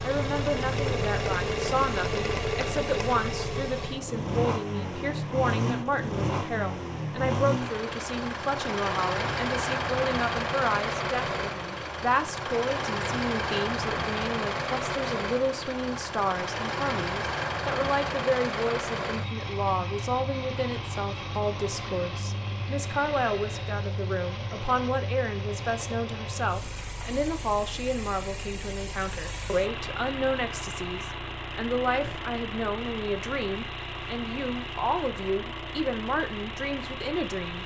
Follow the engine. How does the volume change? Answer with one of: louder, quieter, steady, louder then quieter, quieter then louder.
quieter.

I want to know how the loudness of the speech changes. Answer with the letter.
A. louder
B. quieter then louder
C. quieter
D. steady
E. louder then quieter
D.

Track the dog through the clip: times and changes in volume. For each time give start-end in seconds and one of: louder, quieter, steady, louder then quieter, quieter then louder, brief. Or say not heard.
not heard.